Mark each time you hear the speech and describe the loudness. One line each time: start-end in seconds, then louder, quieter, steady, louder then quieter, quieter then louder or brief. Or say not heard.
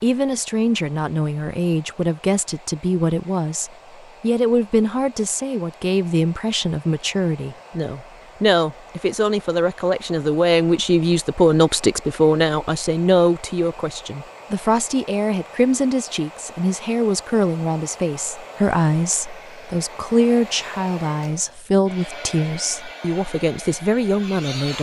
0.0-24.7 steady.